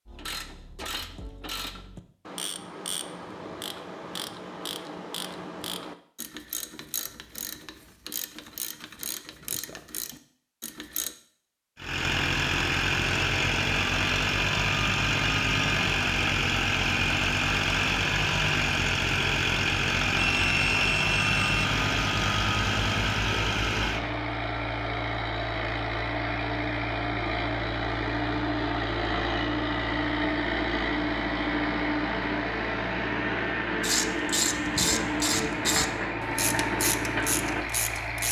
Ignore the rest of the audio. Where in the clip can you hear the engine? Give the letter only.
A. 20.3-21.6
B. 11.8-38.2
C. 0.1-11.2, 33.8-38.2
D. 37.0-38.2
B.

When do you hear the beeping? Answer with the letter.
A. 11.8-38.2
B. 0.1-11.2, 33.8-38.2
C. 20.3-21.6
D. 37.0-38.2
C.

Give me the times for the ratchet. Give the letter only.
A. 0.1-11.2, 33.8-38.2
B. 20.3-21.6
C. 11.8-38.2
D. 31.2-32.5
A.